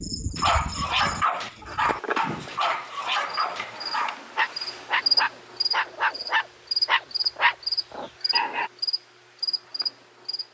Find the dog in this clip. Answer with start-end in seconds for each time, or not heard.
0.3-8.7.